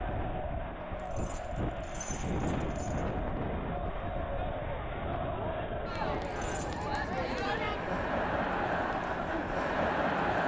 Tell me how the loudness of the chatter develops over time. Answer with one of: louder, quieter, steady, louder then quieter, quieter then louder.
louder.